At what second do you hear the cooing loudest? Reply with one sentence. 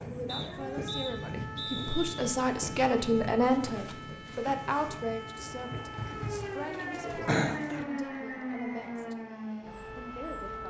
The loudest moment of the cooing is at 7 seconds.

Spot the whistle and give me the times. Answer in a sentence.
You can hear the whistle from 0.2 to 2.1 s and from 7.5 to 8.9 s.